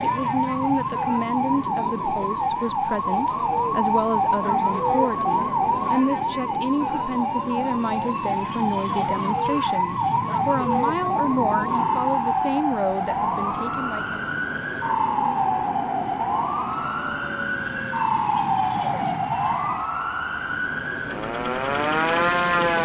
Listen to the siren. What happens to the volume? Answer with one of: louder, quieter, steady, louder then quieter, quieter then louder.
steady.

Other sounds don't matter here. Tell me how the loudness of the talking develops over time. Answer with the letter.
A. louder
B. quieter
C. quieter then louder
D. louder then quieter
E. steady
E.